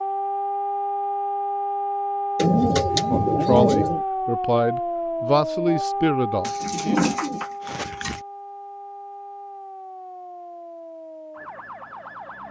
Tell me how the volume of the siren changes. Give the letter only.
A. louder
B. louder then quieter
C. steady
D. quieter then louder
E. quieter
E.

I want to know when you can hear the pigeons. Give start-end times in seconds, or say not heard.
2.4-4.0, 6.4-8.2.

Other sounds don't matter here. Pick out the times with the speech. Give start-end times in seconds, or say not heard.
3.0-7.0.